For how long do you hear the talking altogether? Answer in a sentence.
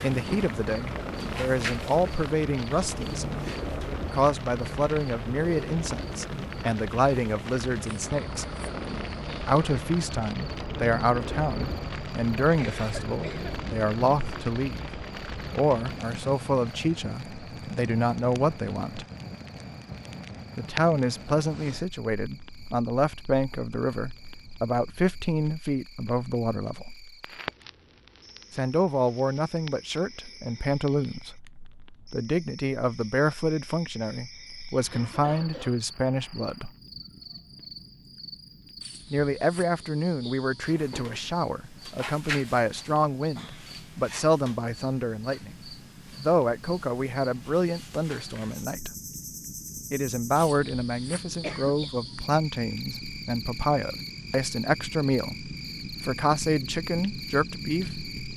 You can hear the talking for 51 seconds altogether.